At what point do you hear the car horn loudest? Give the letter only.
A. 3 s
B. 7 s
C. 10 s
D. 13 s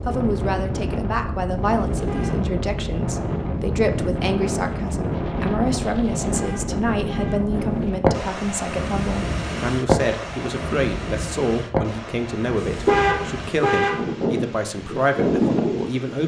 D.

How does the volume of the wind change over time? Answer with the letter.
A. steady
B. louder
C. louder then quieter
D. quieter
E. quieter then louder
A.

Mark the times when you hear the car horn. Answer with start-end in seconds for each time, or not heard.
1.9-2.4, 6.2-7.9, 12.6-14.0.